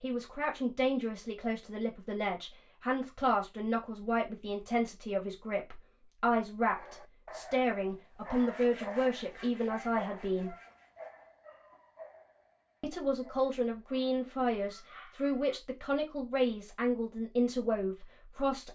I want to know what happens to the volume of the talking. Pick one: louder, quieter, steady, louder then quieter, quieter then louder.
steady.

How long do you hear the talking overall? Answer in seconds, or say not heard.
16 s.